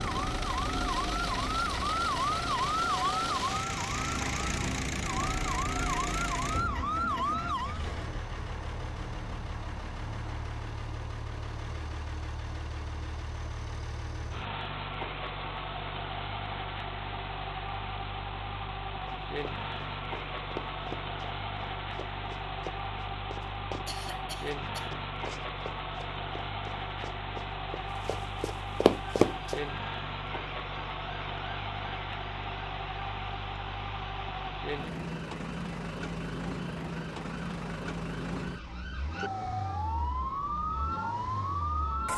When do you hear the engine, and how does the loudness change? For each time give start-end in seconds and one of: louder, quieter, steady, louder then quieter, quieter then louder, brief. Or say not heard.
0.0-42.1 steady.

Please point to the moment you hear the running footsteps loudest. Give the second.
29 s.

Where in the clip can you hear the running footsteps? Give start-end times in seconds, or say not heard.
19.1-23.9, 24.5-29.6.